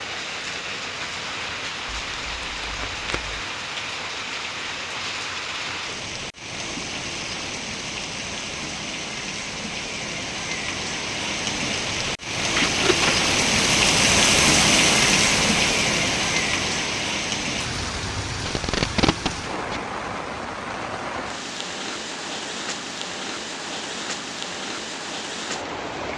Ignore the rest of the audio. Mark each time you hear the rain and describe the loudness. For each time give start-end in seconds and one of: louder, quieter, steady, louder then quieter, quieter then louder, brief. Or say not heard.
0.0-26.1 louder then quieter.